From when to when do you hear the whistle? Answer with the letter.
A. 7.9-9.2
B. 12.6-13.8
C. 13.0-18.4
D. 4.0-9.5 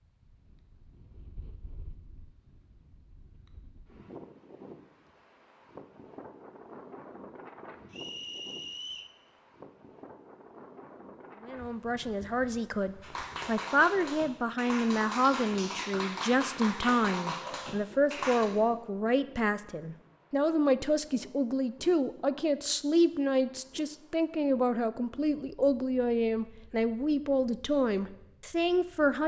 A.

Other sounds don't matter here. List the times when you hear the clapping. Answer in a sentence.
The clapping can be heard from 13.0 to 18.4 s.